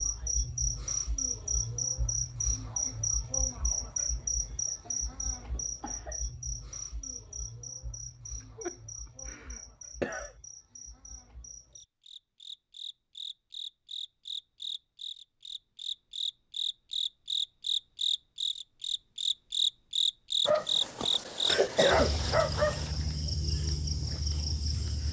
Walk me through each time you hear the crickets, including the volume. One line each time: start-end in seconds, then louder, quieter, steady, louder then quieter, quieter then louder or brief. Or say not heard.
0.0-25.0 quieter then louder.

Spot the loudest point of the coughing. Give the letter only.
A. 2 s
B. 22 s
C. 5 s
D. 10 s
B.